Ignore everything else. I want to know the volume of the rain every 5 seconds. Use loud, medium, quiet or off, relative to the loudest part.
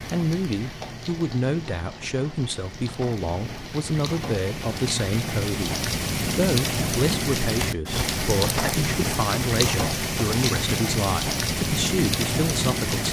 medium, loud, loud.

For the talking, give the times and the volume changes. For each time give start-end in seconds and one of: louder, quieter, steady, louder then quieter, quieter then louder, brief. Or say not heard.
0.0-13.0 steady.